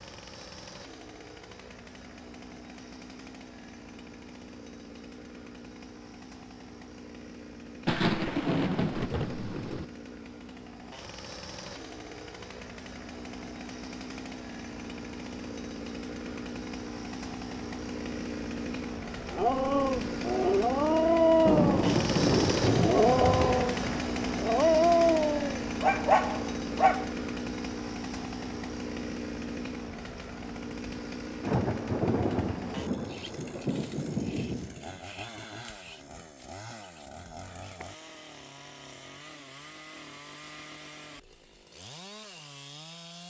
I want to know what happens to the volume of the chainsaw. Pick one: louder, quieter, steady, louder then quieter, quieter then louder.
louder then quieter.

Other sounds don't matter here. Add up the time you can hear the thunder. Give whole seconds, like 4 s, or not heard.
8 s.